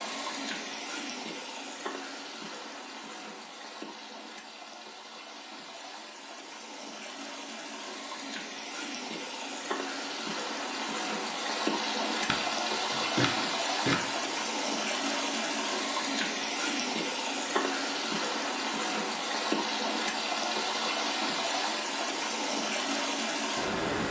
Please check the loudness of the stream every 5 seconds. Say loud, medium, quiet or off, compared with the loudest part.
medium, medium, loud, loud, loud.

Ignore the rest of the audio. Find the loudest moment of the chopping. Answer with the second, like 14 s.
14 s.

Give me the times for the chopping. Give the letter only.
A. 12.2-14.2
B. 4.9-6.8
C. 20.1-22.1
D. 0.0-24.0
A.